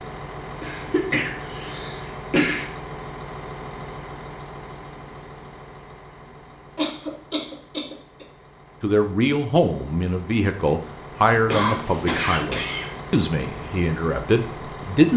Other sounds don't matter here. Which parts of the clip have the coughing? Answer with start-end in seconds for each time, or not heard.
0.6-2.7, 6.8-8.2, 11.4-12.9.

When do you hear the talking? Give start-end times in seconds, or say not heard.
8.8-15.1.